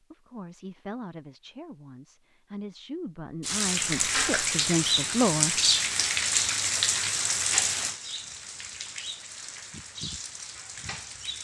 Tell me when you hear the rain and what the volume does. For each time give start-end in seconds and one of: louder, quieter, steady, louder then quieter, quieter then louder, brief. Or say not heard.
3.4-11.3 quieter.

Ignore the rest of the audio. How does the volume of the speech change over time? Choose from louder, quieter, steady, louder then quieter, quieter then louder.
quieter then louder.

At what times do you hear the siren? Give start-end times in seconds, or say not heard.
not heard.